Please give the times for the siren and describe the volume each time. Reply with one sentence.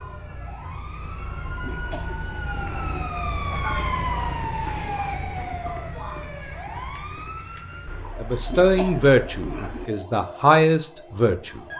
You can hear the siren from 0.0 to 11.7 s, getting louder then quieter.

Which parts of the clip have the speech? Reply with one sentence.
You can hear the speech from 8.2 to 11.6 s.